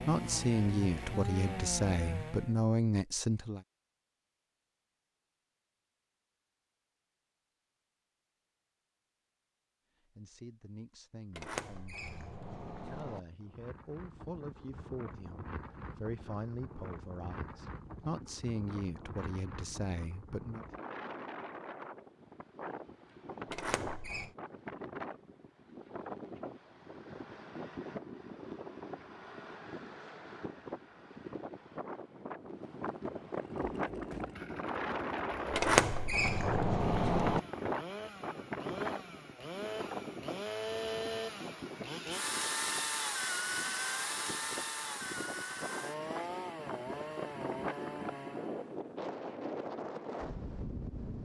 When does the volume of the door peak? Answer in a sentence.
The loudest moment of the door is at 36 seconds.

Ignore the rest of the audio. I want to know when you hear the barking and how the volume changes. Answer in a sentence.
The barking can't be heard in this clip.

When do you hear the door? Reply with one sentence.
The door can be heard from 11.3 to 13.2 s, from 23.5 to 24.3 s and from 35.5 to 37.4 s.